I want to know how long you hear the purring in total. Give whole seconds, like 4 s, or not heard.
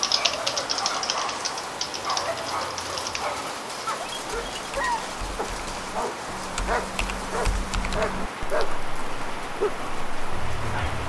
not heard.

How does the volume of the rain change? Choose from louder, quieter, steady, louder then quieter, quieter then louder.
steady.